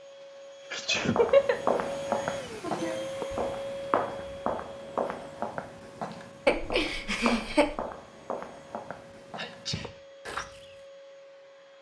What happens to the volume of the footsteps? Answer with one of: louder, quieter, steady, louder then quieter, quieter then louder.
quieter.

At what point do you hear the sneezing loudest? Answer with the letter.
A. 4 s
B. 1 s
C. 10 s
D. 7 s
B.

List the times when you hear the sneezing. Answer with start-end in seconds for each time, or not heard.
0.7-1.2, 9.3-9.9.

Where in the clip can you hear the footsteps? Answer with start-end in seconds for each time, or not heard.
1.1-10.8.